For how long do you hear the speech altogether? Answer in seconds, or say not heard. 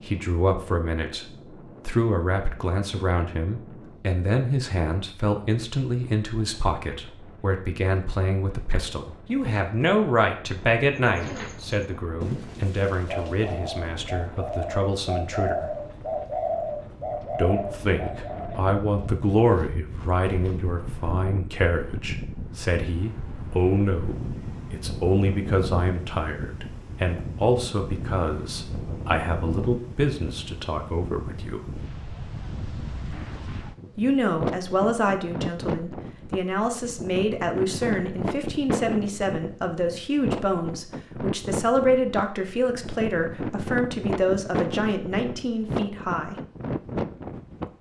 42 s.